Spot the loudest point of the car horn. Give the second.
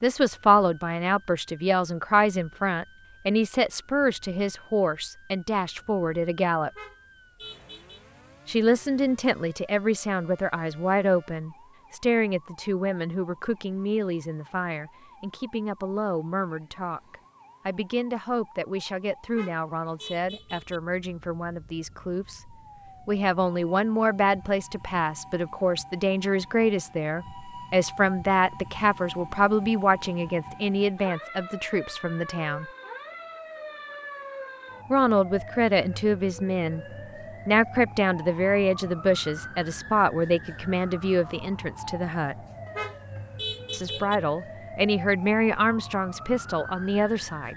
44 s.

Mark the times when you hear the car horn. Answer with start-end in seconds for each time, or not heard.
6.7-8.0, 19.2-20.8, 42.6-44.2.